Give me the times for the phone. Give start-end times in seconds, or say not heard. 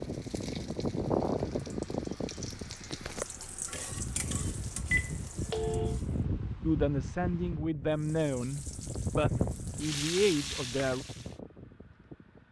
4.3-6.0.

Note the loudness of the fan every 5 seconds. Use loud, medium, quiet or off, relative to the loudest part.
loud, loud, quiet.